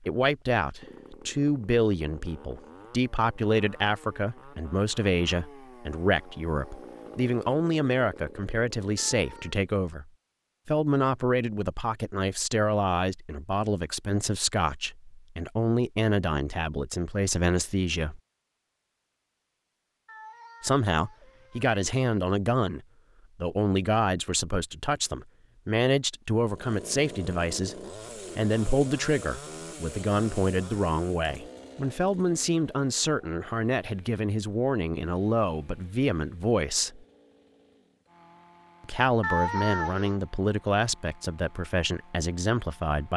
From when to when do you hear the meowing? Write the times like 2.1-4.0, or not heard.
8.9-9.6, 20.1-21.7, 39.2-40.1.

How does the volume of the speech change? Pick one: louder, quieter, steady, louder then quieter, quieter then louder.
steady.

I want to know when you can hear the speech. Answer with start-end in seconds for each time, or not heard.
0.0-18.2, 20.6-27.8, 28.4-37.0, 38.9-43.1.